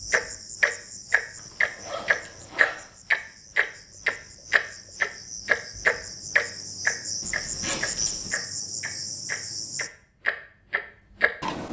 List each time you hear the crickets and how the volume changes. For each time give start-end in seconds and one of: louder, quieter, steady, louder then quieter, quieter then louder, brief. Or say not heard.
0.0-9.9 quieter then louder.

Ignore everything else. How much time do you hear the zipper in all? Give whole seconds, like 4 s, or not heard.
3 s.